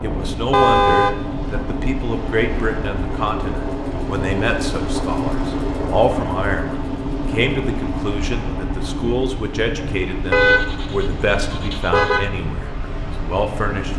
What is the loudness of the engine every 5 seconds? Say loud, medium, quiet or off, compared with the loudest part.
loud, loud, medium.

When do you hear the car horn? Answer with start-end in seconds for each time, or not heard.
0.5-1.2, 10.3-12.3.